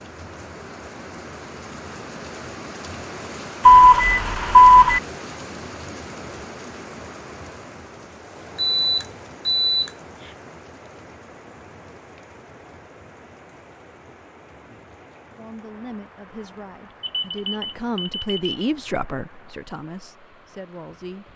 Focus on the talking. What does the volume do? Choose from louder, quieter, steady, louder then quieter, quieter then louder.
louder then quieter.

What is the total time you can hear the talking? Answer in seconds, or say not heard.
6 s.